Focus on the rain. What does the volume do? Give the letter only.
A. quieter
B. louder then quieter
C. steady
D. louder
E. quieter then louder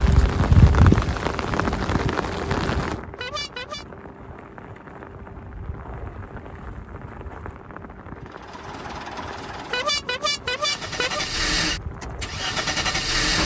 A.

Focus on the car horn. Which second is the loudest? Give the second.
10 s.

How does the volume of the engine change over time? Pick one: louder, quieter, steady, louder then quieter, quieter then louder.
louder.